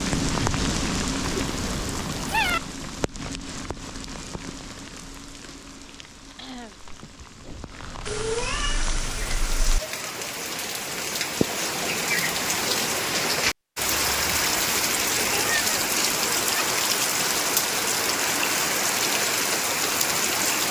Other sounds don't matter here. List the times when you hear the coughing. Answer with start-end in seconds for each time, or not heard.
6.3-6.8.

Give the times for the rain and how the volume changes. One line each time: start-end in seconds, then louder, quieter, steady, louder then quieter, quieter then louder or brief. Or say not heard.
0.0-20.6 quieter then louder.